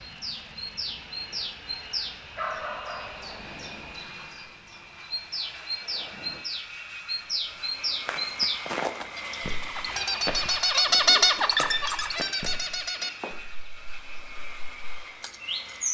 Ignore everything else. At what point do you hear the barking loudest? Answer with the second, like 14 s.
3 s.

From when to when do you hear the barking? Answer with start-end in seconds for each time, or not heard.
0.8-3.3.